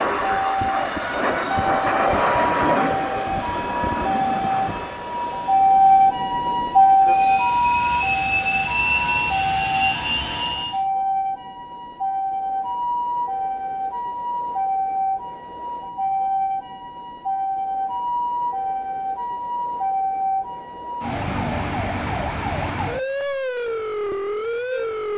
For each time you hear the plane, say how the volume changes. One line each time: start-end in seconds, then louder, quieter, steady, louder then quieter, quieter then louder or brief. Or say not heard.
0.0-10.8 quieter then louder.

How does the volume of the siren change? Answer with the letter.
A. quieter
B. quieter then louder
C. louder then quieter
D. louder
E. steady
A.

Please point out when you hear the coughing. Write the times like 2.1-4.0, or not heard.
not heard.